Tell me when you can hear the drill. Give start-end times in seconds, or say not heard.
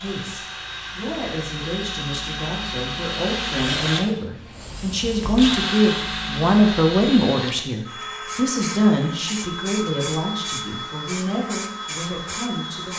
0.0-12.9.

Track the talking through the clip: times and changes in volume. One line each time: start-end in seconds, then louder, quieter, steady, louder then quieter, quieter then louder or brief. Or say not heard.
0.0-12.9 louder then quieter.